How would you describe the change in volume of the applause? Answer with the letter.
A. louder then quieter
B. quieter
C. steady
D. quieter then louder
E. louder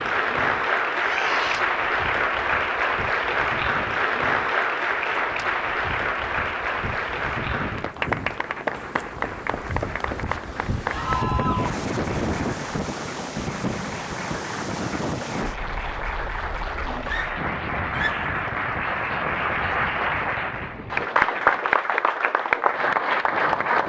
D.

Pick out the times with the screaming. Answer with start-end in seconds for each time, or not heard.
0.9-1.6, 10.8-11.8, 17.1-18.3.